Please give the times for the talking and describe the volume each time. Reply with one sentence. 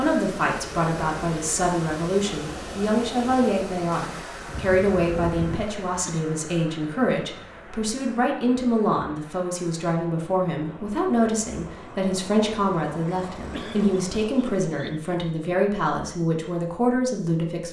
The talking can be heard from 0.0 to 17.6 s, at a steady volume.